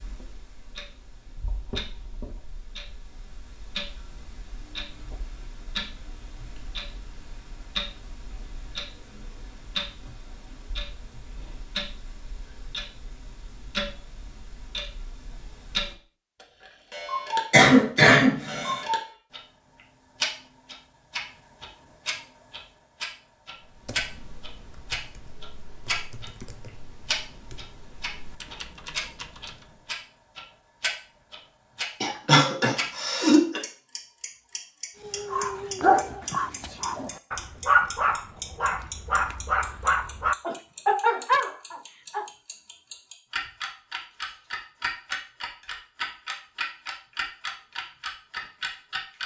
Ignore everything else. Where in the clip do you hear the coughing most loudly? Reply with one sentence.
The volume of the coughing peaks at 18 seconds.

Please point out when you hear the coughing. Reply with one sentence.
You can hear the coughing from 17.5 to 18.8 s and from 32.0 to 33.6 s.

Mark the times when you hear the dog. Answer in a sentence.
The dog can be heard from 35.0 to 42.2 s.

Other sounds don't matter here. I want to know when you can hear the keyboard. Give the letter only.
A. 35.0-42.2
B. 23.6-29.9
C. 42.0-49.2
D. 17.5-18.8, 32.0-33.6
B.